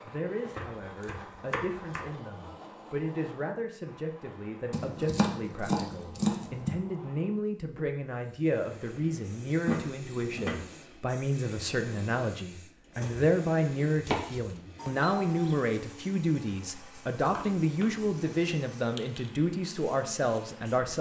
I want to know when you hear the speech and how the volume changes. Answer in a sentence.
The speech can be heard from 0.0 to 20.9 s, getting louder.